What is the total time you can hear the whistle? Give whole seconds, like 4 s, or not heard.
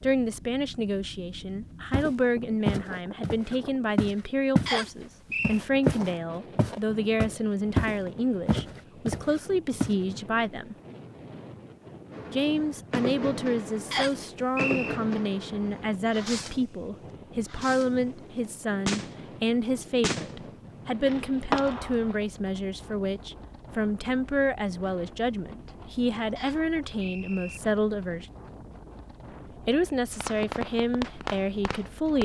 3 s.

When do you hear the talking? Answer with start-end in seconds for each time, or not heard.
0.0-10.8, 12.3-28.2, 29.6-32.2.